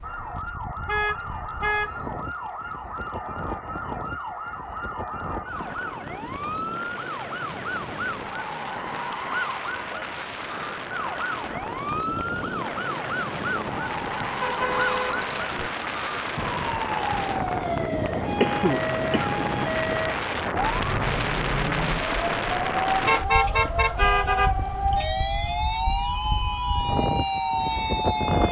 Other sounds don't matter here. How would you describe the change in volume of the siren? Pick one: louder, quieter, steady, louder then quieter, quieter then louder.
louder.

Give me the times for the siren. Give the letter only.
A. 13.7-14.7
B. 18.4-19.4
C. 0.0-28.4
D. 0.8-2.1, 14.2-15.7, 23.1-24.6
C.